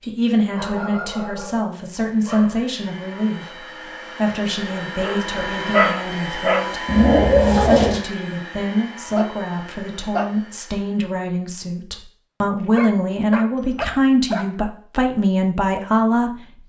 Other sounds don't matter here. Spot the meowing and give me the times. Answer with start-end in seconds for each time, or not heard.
6.8-8.0.